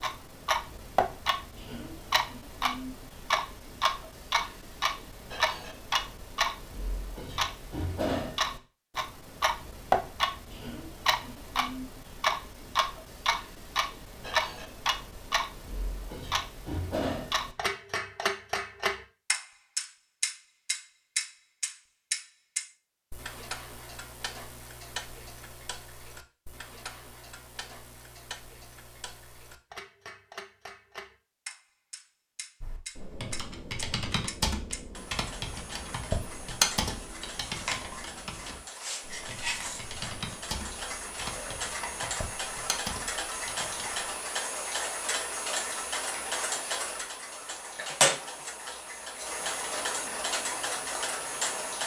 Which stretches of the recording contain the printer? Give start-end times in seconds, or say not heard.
not heard.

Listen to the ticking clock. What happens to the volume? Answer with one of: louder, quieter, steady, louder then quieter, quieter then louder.
quieter then louder.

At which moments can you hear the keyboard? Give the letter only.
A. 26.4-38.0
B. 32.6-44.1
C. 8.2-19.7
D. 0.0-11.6
B.